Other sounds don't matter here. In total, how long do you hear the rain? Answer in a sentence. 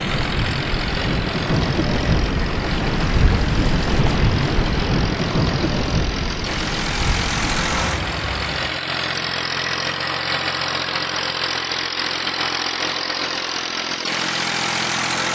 You can hear the rain for 9 seconds altogether.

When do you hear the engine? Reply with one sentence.
You can hear the engine from 0.0 to 15.3 s.